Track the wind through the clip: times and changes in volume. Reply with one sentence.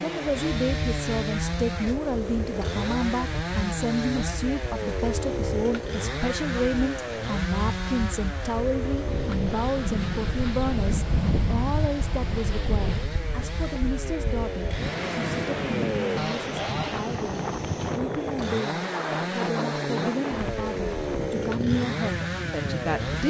You can hear the wind from 0.0 to 23.2 s, getting louder.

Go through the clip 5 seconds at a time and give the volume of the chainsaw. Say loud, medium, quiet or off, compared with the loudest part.
loud, loud, medium, loud, loud.